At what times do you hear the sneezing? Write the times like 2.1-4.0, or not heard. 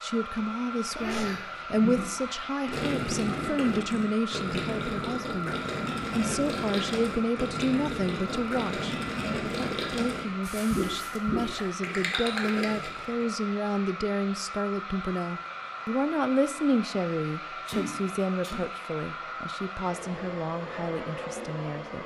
0.9-1.6, 10.4-11.7, 17.6-18.6.